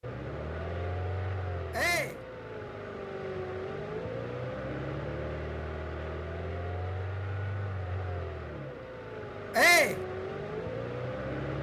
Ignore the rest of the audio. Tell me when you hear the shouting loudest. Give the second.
10 s.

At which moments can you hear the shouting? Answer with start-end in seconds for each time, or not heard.
1.7-2.2, 9.6-10.0.